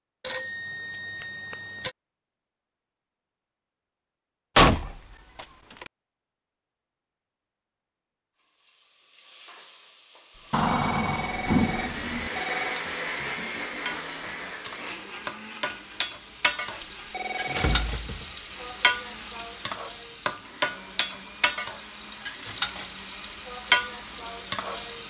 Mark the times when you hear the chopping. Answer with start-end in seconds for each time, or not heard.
not heard.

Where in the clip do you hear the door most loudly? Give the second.
5 s.